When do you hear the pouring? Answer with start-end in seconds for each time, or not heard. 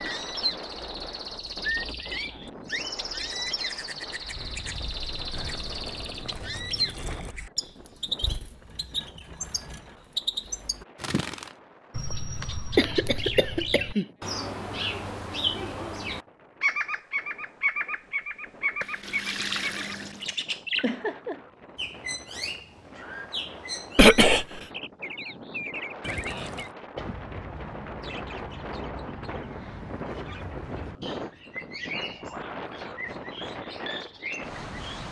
5.3-7.3, 18.8-20.4, 26.0-26.8.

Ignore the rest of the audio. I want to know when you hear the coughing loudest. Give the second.
24 s.